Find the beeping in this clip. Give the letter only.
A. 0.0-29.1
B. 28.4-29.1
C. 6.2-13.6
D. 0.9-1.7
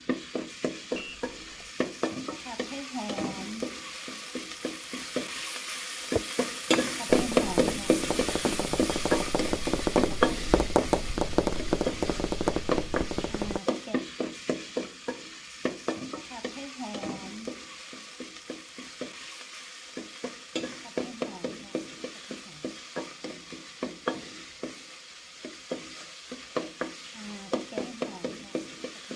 D.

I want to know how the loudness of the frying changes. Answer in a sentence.
The volume of the frying goes up, then down.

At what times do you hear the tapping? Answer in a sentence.
The tapping can be heard from 6.2 to 13.6 s.